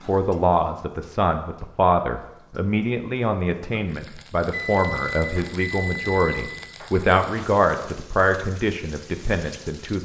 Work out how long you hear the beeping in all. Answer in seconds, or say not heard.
2 s.